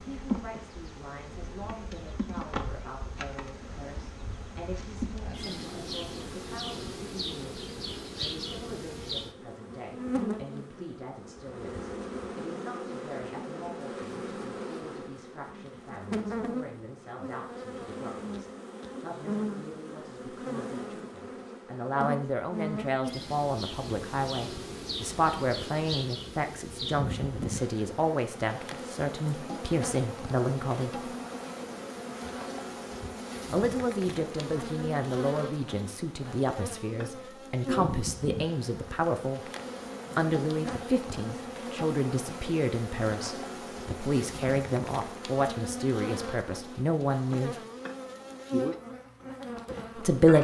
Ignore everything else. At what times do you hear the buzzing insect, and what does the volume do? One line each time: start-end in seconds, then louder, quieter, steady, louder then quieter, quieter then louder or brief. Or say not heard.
0.0-50.3 steady.